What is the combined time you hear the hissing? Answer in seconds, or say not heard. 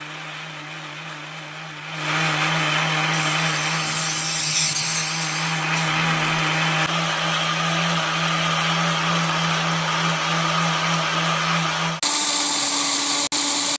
3 s.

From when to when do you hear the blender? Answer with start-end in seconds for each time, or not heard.
0.0-13.7.